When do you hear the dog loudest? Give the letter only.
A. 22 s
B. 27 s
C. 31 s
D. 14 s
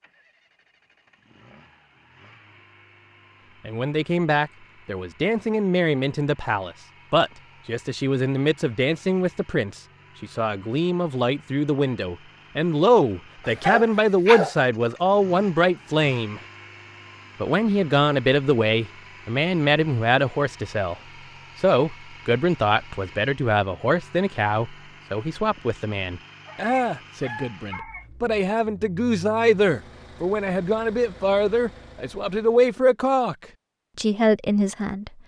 D.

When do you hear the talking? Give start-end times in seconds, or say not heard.
3.6-16.4, 17.4-20.9, 21.6-33.4, 34.0-35.1.